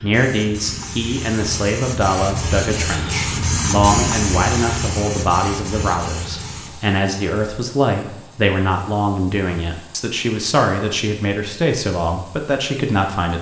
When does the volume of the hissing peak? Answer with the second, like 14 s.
4 s.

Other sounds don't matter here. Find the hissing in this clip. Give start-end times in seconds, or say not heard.
0.0-13.3.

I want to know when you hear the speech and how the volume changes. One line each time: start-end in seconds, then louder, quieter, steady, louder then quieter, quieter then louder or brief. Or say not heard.
0.0-13.3 steady.